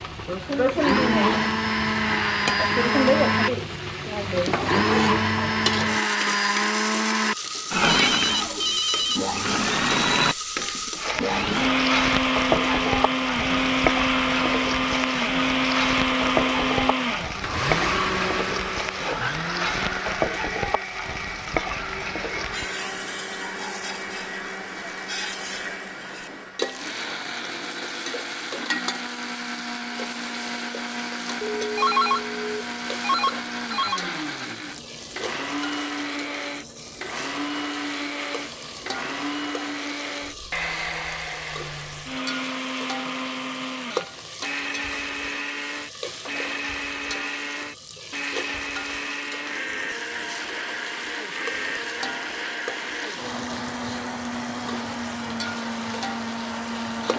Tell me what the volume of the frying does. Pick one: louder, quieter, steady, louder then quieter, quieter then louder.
quieter.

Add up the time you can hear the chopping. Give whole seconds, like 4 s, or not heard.
not heard.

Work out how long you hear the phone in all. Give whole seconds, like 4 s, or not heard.
4 s.